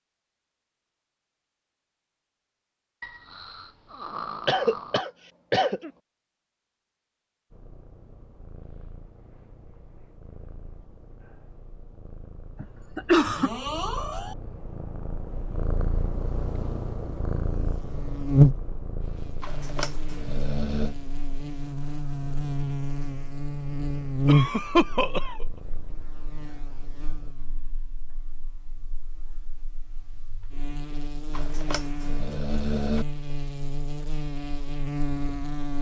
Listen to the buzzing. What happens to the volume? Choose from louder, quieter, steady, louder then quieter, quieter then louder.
quieter then louder.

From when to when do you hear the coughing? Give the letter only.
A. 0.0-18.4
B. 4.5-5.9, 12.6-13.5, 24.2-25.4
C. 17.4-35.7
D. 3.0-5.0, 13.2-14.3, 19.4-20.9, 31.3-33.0
B.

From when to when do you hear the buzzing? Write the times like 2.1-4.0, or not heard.
17.4-35.7.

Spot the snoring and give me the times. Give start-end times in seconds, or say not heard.
3.0-5.0, 13.2-14.3, 19.4-20.9, 31.3-33.0.